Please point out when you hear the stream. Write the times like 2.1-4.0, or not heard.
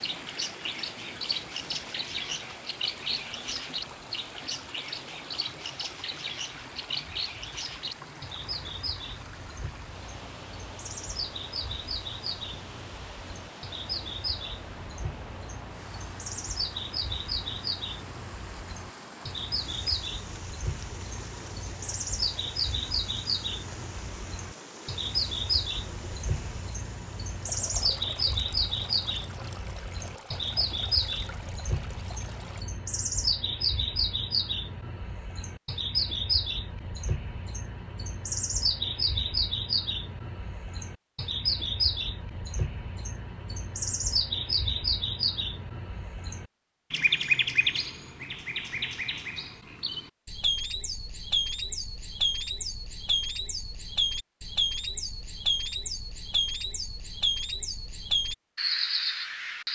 0.0-32.6.